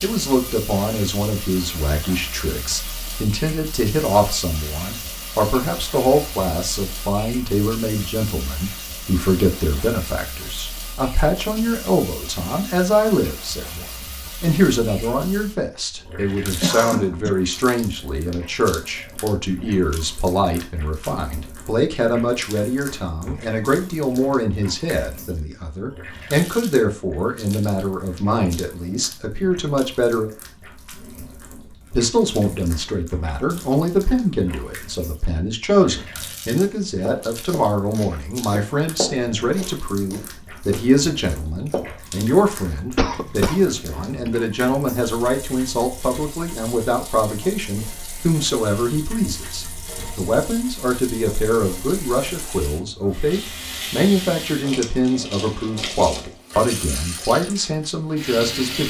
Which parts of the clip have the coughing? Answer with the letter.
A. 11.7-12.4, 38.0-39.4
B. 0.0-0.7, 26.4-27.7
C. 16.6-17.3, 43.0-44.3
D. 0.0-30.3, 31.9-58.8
C.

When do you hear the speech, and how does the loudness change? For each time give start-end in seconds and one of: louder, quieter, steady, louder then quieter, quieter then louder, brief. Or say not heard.
0.0-30.3 steady
31.9-58.8 steady.